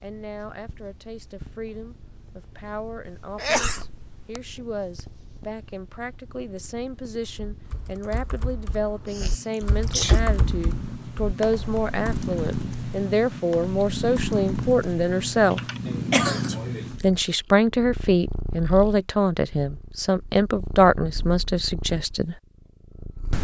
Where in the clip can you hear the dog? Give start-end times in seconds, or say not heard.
not heard.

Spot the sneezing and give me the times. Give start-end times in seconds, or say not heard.
3.0-4.4, 9.1-10.2, 15.8-16.8.